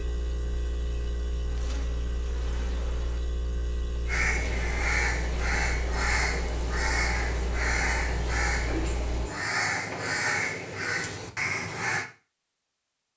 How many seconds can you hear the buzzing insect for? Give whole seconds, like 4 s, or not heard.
2 s.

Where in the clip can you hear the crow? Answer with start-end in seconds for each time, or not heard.
4.0-12.1.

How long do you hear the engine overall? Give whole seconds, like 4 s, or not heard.
9 s.